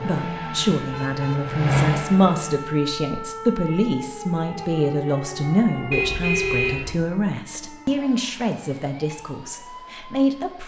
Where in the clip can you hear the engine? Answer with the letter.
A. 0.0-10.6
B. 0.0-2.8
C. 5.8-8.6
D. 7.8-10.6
B.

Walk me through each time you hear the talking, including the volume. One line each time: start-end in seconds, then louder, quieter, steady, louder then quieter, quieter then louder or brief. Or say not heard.
0.0-10.6 quieter.